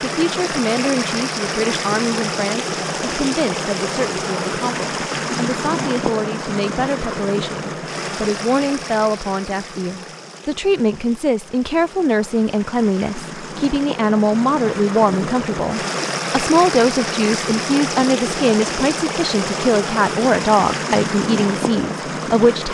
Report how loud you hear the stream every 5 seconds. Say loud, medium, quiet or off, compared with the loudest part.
loud, loud, medium, loud, loud.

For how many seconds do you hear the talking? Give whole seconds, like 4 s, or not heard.
23 s.